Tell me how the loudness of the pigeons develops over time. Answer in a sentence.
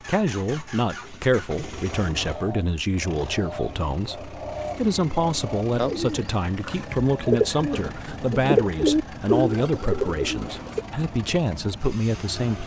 The loudness of the pigeons goes up.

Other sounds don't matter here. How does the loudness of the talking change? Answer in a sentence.
The volume of the talking stays about the same.